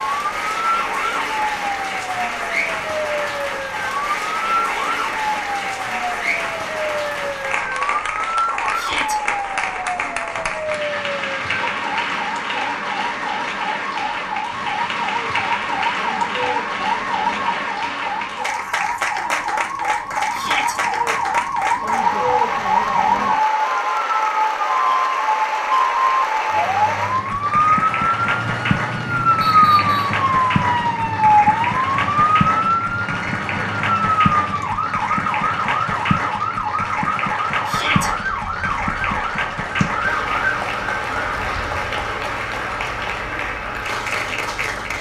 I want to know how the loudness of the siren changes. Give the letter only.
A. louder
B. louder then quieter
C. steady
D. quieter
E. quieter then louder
B.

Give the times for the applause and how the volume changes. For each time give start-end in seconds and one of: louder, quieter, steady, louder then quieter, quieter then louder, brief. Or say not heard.
0.0-44.9 steady.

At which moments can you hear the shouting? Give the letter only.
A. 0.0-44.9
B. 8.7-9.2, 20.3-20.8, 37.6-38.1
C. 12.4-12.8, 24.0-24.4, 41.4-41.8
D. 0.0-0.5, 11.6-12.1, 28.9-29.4
B.